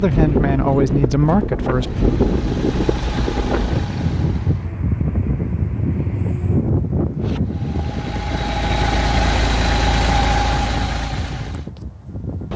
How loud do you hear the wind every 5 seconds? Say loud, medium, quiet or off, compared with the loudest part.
loud, loud, medium.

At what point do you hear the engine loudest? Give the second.
10 s.